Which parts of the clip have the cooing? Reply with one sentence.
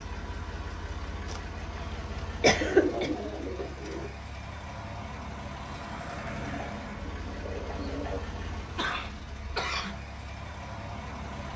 The cooing can be heard from 2.6 to 4.1 s and from 6.4 to 8.2 s.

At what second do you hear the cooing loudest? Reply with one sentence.
The volume of the cooing peaks at 3 seconds.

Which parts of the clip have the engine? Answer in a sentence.
The engine can be heard from 0.0 to 11.5 s.